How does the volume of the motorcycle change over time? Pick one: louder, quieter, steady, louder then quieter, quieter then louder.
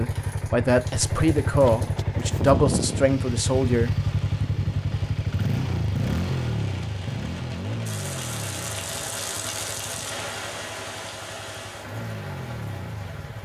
quieter.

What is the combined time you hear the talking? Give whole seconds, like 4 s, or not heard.
4 s.